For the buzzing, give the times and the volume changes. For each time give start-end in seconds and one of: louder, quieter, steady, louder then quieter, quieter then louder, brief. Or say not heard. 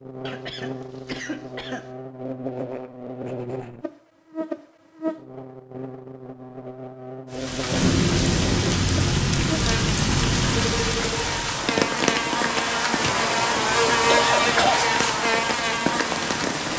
0.0-16.7 louder.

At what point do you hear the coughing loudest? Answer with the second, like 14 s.
14 s.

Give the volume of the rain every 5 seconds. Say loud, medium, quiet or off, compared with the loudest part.
off, loud, loud, medium.